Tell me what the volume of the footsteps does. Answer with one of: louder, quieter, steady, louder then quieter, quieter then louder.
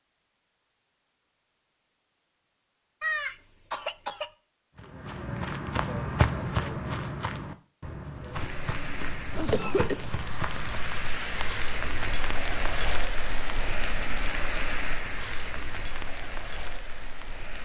quieter.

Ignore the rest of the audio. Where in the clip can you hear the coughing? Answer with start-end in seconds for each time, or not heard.
3.0-4.3, 9.4-10.0.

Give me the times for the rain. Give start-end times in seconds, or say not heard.
8.3-17.5.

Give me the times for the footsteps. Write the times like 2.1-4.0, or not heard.
4.8-11.1.